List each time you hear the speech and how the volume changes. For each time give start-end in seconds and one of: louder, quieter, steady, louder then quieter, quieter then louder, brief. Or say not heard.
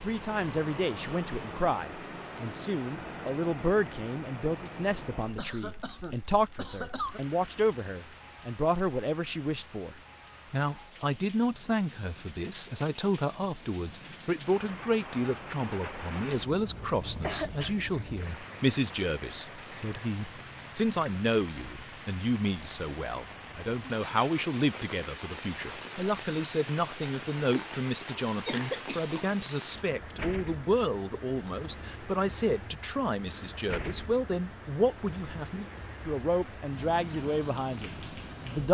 0.0-38.6 steady.